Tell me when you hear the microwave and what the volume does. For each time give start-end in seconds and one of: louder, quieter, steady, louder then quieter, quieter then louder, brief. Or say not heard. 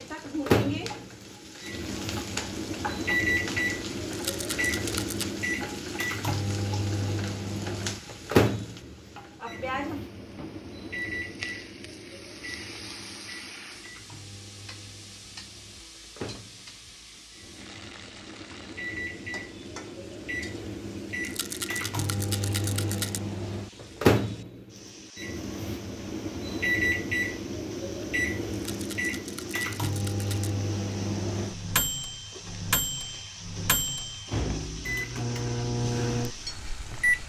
0.0-37.2 quieter then louder.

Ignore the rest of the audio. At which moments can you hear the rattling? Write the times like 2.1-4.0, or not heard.
4.1-5.2, 21.2-23.2, 28.5-30.5.